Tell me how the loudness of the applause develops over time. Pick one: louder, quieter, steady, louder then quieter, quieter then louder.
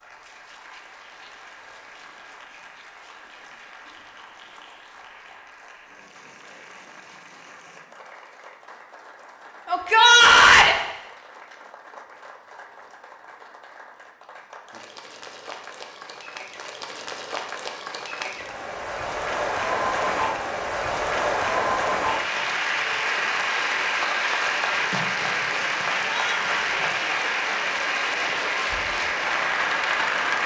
louder.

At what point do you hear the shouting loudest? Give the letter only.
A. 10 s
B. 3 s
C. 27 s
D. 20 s
A.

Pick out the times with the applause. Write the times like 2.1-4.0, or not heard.
0.0-30.4.